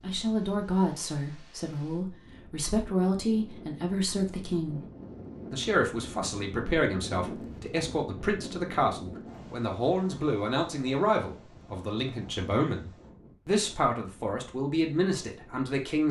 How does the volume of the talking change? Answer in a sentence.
The loudness of the talking stays about the same.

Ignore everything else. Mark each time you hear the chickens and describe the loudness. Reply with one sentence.
The chickens can't be heard in this clip.